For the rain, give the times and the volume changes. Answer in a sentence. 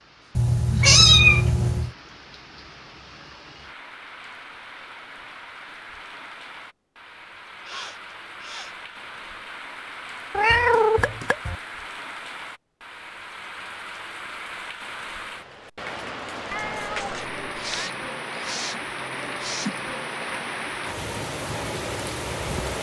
You can hear the rain from 0.0 to 22.7 s, getting louder.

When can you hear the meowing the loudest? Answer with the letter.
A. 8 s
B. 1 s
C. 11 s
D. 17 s
B.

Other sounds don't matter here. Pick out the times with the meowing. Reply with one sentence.
You can hear the meowing from 0.3 to 1.9 s, from 10.3 to 11.6 s and from 16.5 to 17.9 s.